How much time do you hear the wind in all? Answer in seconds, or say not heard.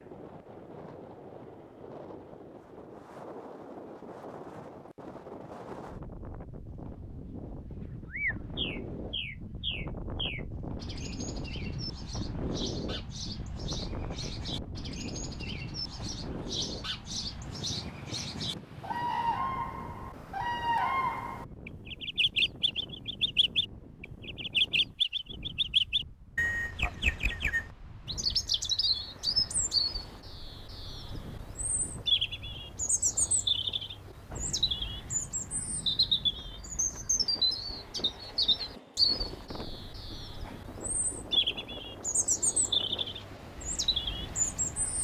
45 s.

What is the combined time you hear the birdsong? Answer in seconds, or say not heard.
37 s.